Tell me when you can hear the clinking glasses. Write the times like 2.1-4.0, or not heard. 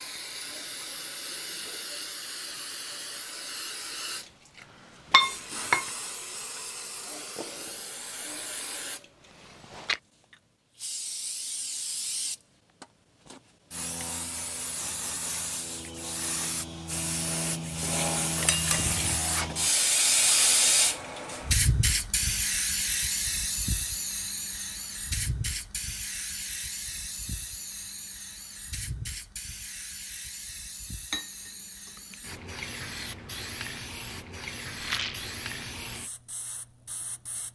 5.1-5.8, 17.8-19.1, 31.1-32.4.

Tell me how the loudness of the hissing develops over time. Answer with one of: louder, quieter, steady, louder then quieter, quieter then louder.
louder then quieter.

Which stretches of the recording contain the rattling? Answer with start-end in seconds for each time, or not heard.
34.8-35.3.